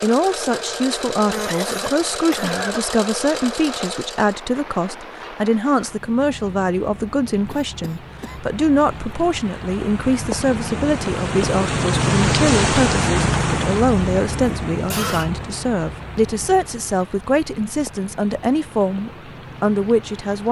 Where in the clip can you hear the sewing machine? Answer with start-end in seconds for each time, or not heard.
0.0-4.4.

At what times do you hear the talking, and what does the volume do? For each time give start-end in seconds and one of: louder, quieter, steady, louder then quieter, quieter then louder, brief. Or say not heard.
0.0-20.4 steady.